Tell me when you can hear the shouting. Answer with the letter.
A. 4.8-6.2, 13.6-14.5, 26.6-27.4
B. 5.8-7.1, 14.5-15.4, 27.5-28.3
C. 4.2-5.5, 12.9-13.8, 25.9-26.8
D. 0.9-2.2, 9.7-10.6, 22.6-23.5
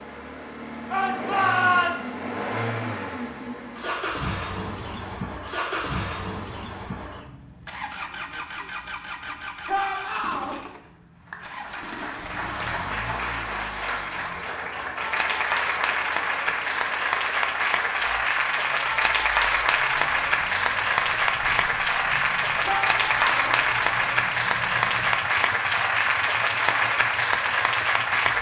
D.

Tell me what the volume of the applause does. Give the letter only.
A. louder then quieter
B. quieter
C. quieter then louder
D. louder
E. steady
D.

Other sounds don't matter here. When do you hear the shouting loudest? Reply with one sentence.
The volume of the shouting peaks at 2 seconds.